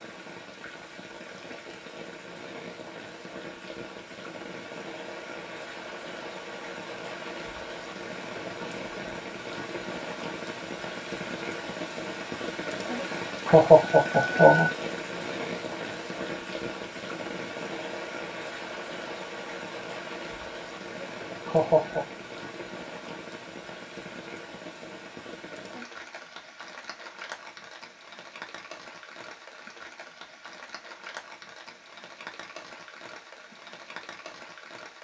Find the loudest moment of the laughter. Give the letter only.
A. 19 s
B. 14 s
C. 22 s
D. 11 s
B.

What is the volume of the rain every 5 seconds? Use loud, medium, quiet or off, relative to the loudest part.
medium, loud, loud, loud, medium, medium, medium.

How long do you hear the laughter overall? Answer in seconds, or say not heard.
3 s.